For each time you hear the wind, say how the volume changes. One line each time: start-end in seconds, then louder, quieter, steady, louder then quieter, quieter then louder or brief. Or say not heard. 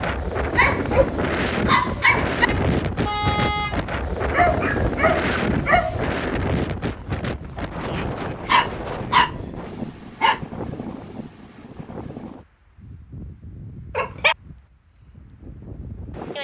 0.0-16.3 quieter.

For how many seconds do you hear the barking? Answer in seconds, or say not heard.
6 s.